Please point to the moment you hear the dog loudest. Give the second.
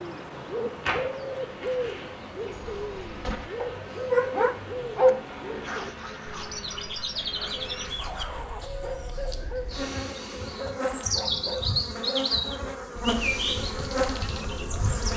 5 s.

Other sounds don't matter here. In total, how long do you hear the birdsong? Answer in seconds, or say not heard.
15 s.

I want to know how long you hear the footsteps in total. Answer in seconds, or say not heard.
not heard.